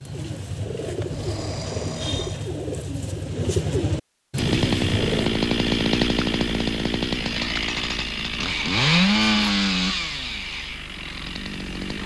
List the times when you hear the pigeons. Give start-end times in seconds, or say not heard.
0.0-5.4.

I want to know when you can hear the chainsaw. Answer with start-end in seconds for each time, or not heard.
4.3-12.0.